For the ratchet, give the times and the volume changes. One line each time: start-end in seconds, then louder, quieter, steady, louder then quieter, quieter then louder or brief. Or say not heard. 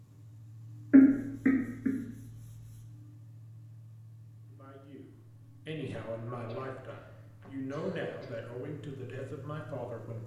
not heard.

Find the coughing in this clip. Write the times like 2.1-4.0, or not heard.
0.9-1.9, 6.3-8.5.